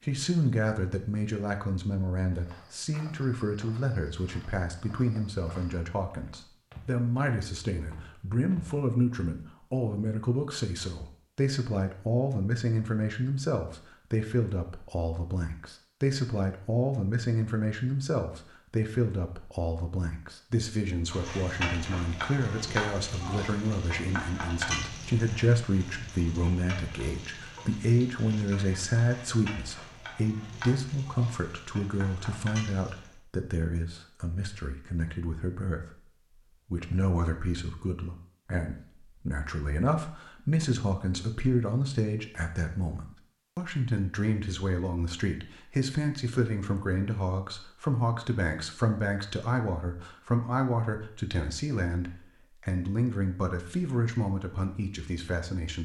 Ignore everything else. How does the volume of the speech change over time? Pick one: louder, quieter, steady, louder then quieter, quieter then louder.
steady.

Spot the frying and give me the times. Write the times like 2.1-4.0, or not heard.
21.1-33.2.